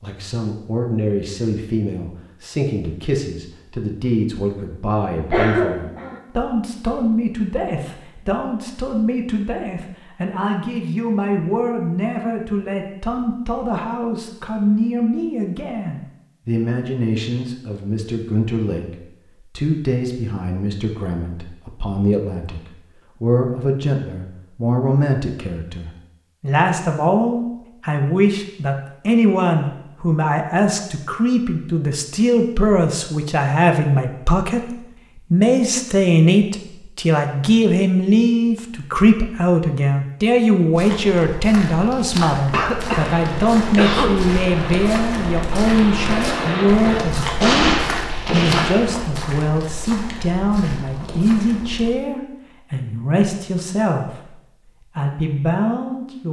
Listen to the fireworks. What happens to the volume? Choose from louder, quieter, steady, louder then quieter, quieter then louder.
louder.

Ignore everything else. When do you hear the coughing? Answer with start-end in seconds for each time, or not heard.
5.3-6.2, 42.5-44.2.